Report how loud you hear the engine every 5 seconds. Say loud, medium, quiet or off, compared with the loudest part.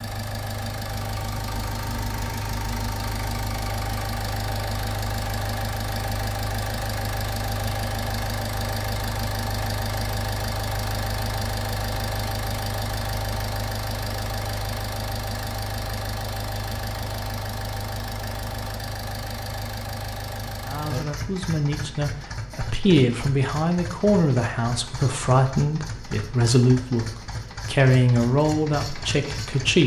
loud, loud, loud, loud, medium, medium.